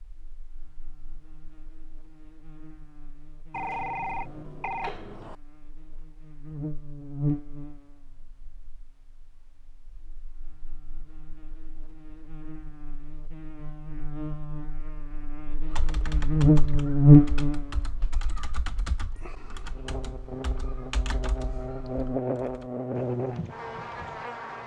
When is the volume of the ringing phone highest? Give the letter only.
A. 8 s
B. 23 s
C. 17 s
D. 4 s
D.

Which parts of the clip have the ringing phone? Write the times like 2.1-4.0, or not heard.
3.5-5.3.